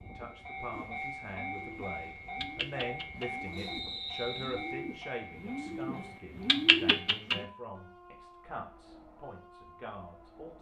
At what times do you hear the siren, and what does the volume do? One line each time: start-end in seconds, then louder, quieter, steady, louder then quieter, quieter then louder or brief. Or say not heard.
not heard.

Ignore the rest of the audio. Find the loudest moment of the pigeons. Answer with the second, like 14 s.
7 s.